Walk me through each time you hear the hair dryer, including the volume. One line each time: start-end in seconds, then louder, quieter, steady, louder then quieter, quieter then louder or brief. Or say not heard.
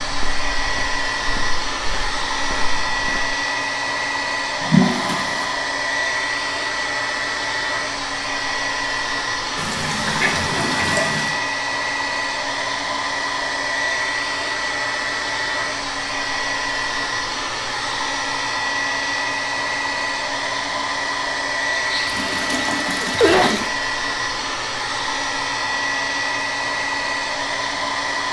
0.0-28.2 steady.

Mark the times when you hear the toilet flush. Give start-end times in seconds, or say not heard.
4.6-5.5, 9.6-11.4, 22.1-23.5.